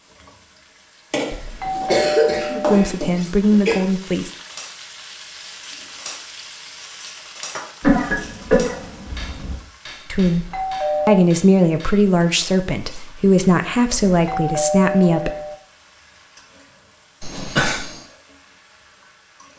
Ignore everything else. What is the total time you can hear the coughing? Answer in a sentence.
You can hear the coughing for 5 seconds altogether.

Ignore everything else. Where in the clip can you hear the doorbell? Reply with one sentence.
You can hear the doorbell from 1.3 to 2.9 s, from 10.3 to 11.2 s and from 14.1 to 15.6 s.